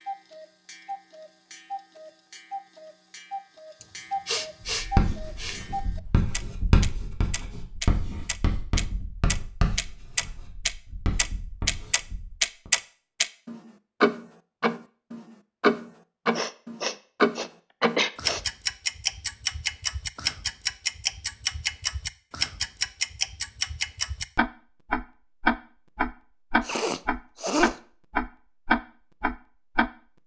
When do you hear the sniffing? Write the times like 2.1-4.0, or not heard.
3.8-5.6, 16.4-18.4, 26.6-27.8.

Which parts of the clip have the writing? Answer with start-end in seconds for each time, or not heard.
4.6-12.7.